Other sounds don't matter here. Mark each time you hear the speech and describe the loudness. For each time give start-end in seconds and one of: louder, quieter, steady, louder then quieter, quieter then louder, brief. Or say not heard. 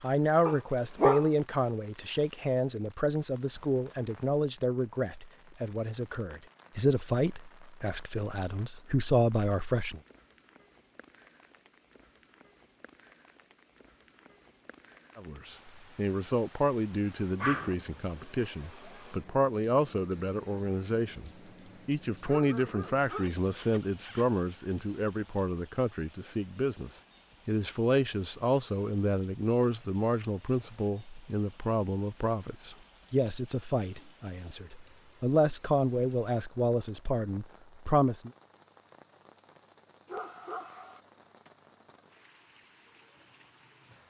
0.0-10.0 steady
15.2-38.3 steady.